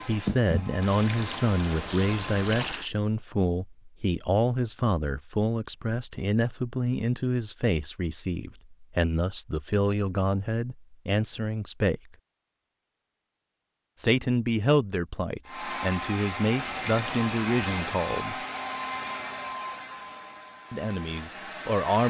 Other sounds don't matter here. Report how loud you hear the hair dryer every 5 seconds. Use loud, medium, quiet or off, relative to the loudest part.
loud, off, off, loud, medium.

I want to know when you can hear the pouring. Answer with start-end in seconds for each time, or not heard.
0.8-2.9, 16.6-18.0.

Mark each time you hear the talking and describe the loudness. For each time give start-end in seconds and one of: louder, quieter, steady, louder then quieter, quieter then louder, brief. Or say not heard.
0.1-12.2 steady
13.9-18.4 quieter then louder
20.7-22.0 brief.